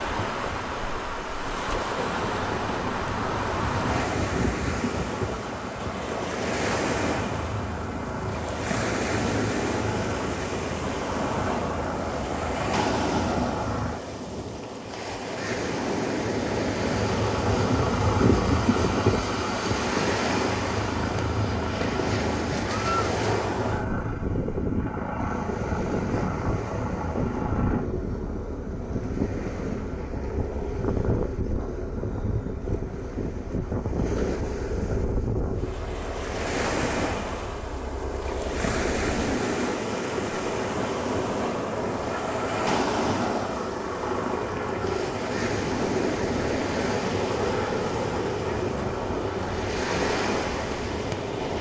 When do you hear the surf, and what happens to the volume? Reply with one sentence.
The surf can be heard from 0.0 to 51.5 s, at a steady volume.